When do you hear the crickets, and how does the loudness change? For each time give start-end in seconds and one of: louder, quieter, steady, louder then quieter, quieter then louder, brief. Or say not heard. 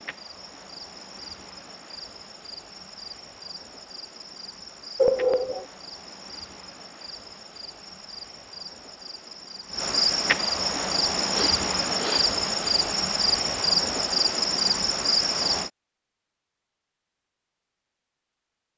0.0-15.7 louder.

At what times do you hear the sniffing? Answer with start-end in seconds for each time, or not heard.
5.0-5.7, 11.3-12.3.